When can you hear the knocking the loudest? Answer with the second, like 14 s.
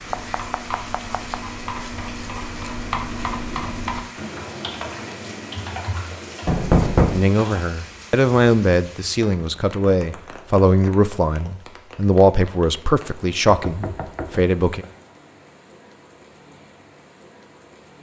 7 s.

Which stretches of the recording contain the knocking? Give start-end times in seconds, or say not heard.
0.1-1.4, 6.5-7.2, 13.4-14.9.